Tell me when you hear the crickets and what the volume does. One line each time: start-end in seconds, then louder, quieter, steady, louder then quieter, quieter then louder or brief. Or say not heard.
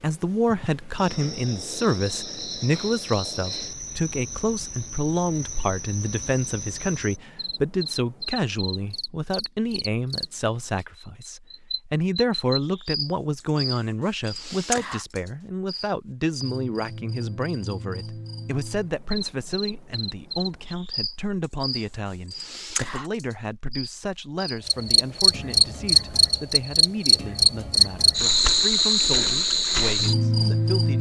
0.0-30.9 louder.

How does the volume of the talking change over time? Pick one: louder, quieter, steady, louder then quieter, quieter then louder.
quieter.